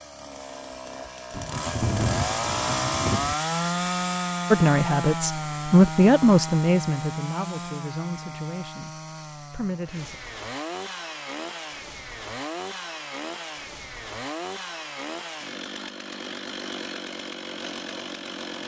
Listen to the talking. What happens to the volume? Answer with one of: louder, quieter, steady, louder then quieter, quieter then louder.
quieter.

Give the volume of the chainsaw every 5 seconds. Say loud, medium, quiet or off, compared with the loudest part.
loud, medium, medium, medium.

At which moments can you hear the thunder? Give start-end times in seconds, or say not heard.
1.3-3.4.